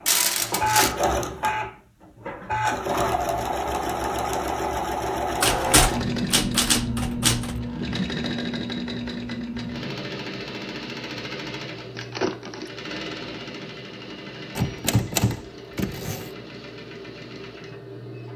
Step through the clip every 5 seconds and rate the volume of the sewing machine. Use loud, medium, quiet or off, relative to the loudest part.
loud, loud, medium, quiet.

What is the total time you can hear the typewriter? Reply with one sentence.
The typewriter can be heard for 4 seconds in total.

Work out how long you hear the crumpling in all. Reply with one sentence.
You can hear the crumpling for 2 seconds altogether.